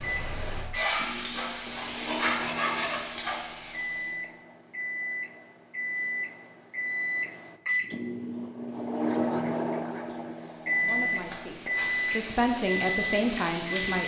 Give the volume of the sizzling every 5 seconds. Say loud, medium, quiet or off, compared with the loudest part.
loud, off, medium.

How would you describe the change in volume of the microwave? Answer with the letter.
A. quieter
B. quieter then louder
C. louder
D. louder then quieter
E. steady
C.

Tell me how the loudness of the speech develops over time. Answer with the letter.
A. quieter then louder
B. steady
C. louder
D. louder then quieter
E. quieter
C.